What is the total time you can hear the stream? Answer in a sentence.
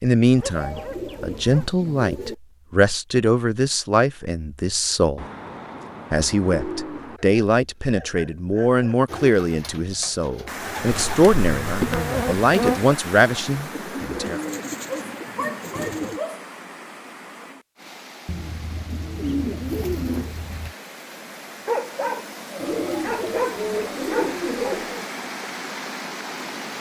You can hear the stream for 16 seconds altogether.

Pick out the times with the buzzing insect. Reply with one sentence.
The buzzing insect can be heard from 10.8 to 12.9 s.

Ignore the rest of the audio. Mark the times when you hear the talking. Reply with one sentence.
The talking can be heard from 0.0 to 5.2 s and from 6.1 to 14.4 s.